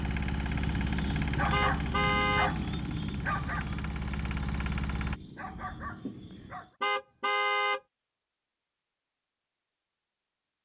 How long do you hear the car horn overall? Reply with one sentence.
The car horn can be heard for 2 seconds in total.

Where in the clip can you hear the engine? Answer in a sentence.
You can hear the engine from 0.0 to 5.2 s.